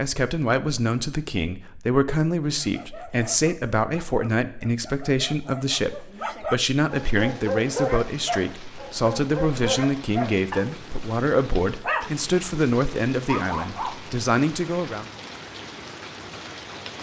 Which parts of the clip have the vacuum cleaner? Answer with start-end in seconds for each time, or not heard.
not heard.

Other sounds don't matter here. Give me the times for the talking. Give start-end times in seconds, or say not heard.
0.0-15.1.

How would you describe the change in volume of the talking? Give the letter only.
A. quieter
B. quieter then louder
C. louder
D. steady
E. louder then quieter
D.